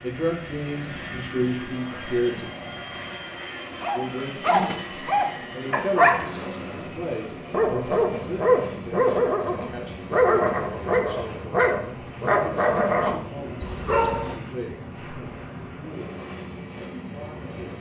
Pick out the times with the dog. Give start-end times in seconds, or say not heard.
3.8-14.4.